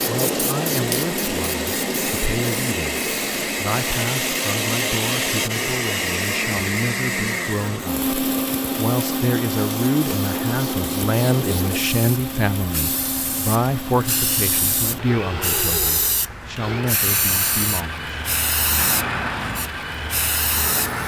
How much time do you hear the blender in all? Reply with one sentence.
The blender can be heard for 21 seconds in total.